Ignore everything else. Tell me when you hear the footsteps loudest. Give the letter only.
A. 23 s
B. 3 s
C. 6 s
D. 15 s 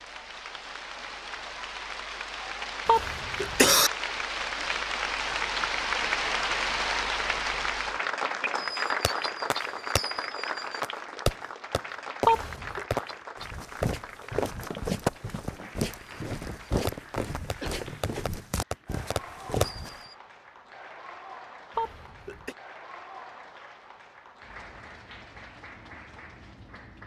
D.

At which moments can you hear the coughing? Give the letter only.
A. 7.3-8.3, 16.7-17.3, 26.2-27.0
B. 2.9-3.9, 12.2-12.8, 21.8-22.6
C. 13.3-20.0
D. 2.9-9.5
B.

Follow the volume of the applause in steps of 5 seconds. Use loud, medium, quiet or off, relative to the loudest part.
medium, loud, medium, quiet, quiet, quiet.